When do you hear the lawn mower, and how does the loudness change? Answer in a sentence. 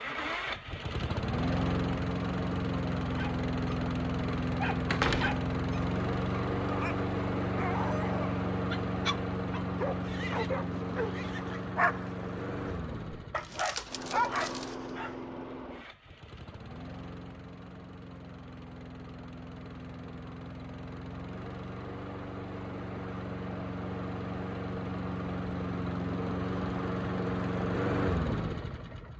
The lawn mower can be heard from 0.0 to 29.1 s, getting quieter then louder.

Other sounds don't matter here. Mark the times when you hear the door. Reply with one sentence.
The door can be heard from 4.9 to 5.5 s.